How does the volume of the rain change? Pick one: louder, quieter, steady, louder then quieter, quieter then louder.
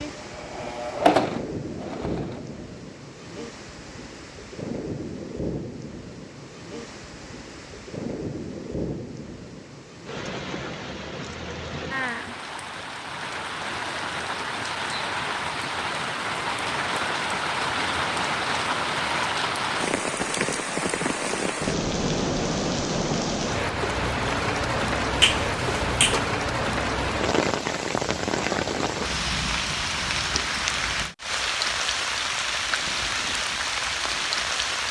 louder.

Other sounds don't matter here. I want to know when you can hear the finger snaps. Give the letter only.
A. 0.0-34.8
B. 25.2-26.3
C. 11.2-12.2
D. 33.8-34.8
B.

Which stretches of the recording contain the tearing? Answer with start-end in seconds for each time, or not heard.
not heard.